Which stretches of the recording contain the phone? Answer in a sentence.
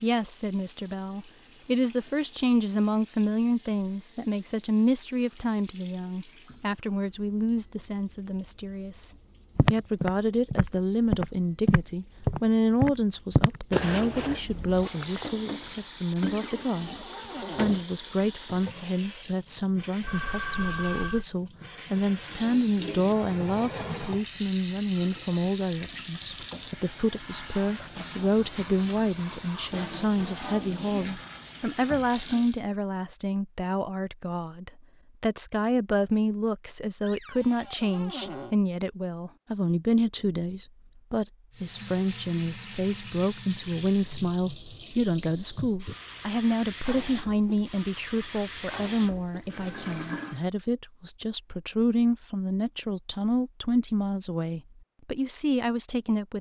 The phone can be heard from 20.0 to 21.2 s.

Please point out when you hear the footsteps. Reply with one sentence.
You can hear the footsteps from 9.6 to 15.9 s.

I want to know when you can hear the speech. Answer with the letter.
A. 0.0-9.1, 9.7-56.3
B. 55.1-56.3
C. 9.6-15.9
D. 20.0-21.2
A.